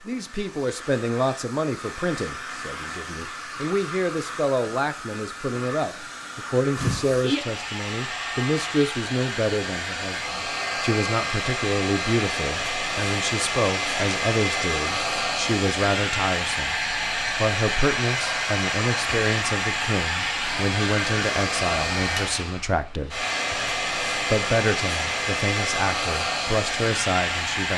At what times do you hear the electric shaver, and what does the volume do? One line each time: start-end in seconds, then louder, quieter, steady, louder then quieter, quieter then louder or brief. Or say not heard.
not heard.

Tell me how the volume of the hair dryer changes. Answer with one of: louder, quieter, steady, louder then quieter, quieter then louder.
louder.